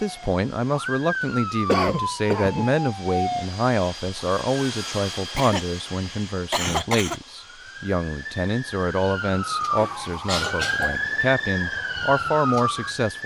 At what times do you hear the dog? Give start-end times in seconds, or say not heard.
not heard.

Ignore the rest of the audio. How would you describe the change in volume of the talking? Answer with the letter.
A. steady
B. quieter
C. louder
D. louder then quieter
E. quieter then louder
A.